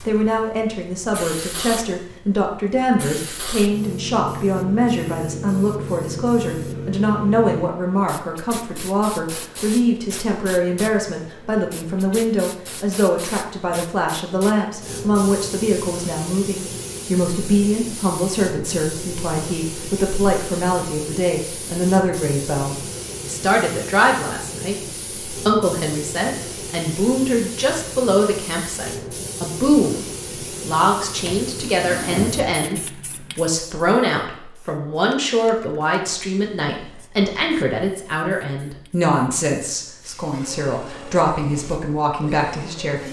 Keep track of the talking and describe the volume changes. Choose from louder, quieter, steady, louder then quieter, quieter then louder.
steady.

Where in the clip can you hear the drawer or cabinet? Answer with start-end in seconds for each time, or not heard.
31.2-32.5.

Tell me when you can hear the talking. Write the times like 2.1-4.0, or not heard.
0.1-43.0.